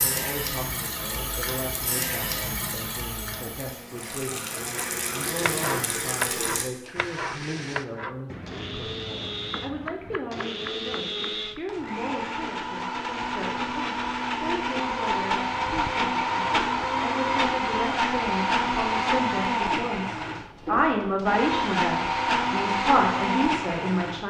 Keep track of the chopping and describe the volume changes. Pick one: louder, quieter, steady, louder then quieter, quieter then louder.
quieter.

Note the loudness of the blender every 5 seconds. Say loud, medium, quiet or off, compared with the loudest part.
quiet, quiet, medium, loud, loud.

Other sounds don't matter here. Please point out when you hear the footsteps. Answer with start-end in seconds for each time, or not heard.
not heard.